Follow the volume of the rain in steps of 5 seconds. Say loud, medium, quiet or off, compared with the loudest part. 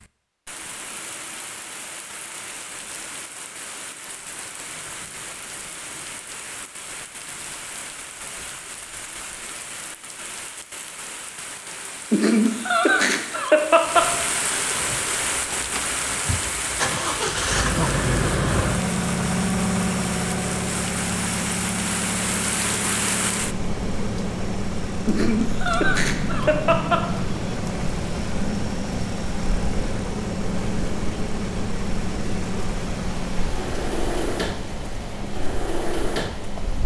medium, medium, loud, loud, loud, loud, loud, medium.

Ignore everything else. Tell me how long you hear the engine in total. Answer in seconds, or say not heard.
22 s.